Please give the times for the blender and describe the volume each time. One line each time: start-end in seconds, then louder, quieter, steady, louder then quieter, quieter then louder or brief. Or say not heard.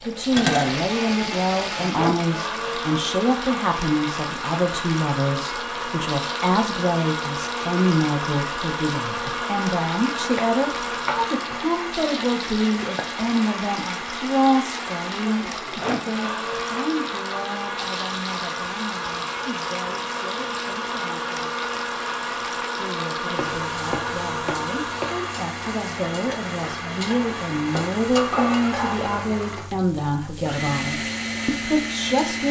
0.0-32.4 steady.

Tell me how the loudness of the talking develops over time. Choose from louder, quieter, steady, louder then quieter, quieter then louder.
quieter then louder.